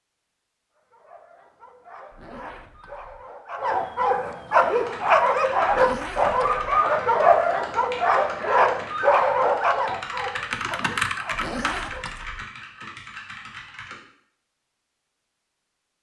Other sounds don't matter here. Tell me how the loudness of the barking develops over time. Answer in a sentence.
The loudness of the barking goes up, then down.